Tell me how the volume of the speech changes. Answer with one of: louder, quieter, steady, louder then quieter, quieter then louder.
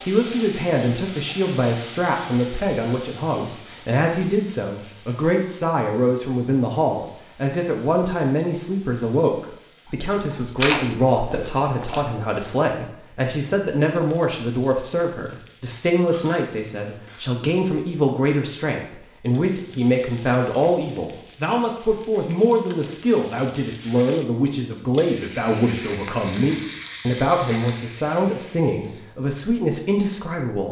steady.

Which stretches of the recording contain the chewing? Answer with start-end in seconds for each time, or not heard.
10.6-12.1, 15.9-17.3.